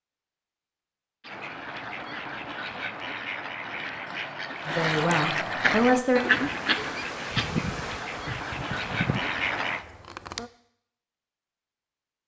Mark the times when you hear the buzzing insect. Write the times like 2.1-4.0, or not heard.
5.9-10.5.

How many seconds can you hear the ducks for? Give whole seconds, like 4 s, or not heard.
9 s.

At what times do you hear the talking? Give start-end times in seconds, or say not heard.
4.7-6.2.